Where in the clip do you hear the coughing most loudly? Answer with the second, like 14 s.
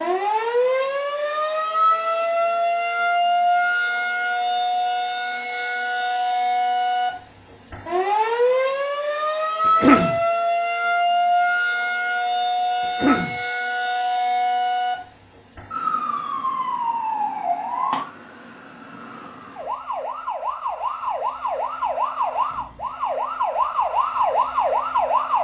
10 s.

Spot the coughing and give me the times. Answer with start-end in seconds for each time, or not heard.
9.7-10.2, 12.8-13.3.